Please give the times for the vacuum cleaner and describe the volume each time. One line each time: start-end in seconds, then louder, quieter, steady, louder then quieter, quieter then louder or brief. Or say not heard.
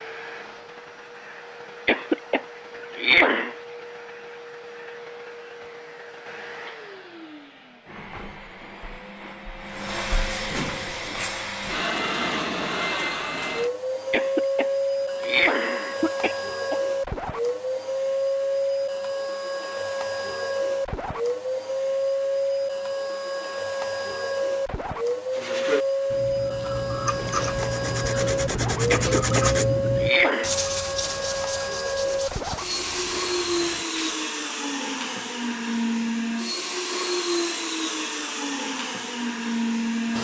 0.0-40.2 louder.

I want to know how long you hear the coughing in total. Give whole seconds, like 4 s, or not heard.
6 s.